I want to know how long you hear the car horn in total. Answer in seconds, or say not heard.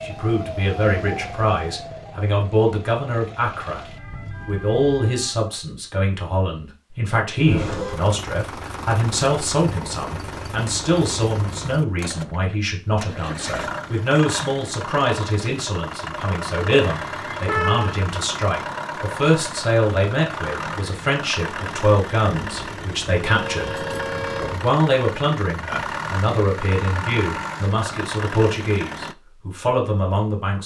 4 s.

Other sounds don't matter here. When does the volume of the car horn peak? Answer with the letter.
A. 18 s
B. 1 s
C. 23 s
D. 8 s
A.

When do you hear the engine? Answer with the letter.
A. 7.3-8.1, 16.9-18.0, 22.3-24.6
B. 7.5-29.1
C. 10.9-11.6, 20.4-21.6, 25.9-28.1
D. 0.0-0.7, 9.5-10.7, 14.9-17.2
B.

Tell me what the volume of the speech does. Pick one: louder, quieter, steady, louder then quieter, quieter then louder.
steady.